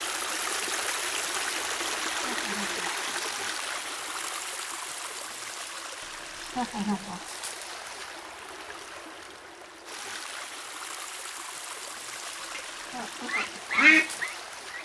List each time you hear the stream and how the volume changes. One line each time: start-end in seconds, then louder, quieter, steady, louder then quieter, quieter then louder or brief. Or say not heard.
0.0-14.7 quieter.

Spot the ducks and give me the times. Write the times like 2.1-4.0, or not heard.
12.6-14.7.